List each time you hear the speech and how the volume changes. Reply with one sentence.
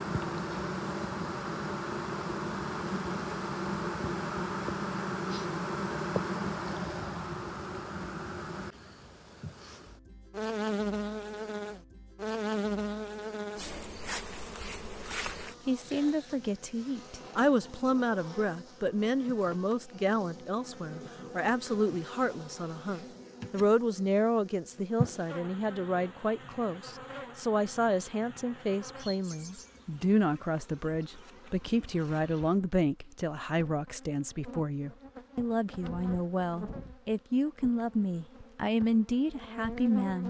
The speech can be heard from 15.7 to 40.2 s, at a steady volume.